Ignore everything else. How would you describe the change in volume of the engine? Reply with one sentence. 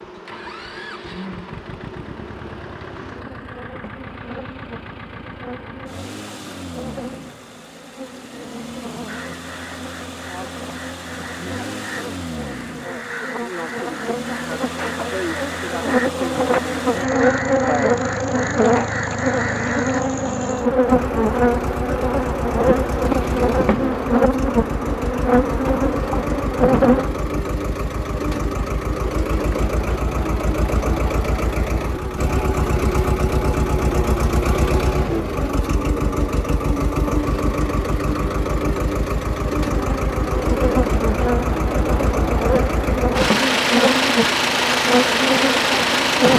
The volume of the engine goes up.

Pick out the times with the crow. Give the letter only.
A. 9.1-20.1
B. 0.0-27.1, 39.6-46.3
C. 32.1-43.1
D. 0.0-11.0
A.